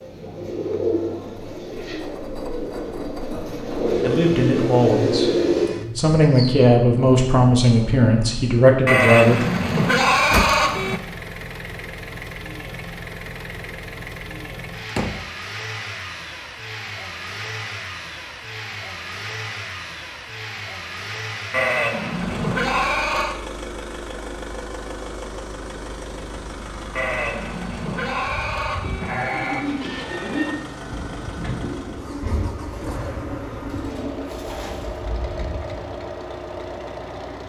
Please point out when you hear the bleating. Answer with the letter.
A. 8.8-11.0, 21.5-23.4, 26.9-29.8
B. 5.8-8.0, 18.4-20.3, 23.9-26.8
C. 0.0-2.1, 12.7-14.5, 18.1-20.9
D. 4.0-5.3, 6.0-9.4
A.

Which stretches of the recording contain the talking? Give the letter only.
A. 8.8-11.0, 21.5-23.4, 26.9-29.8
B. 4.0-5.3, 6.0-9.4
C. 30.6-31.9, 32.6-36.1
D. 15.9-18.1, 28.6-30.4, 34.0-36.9
B.